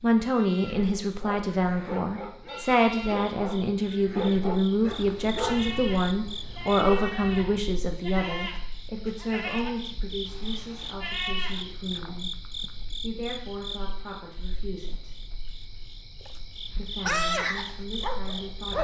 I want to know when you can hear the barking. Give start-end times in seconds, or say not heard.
0.8-7.7, 17.1-18.7.